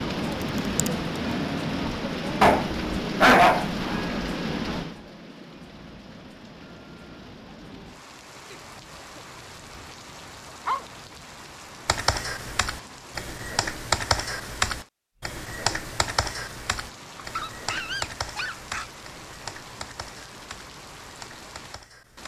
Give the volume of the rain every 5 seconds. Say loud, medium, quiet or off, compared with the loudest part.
loud, quiet, quiet, quiet, quiet.